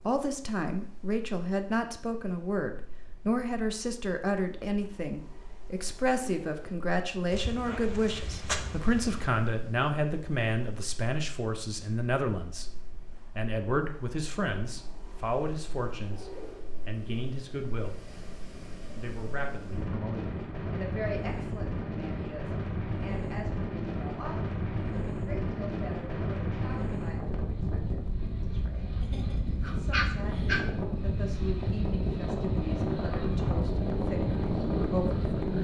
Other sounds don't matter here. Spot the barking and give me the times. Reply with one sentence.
The barking can be heard from 7.3 to 9.3 s and from 29.0 to 30.6 s.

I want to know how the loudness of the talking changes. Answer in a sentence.
The volume of the talking goes down.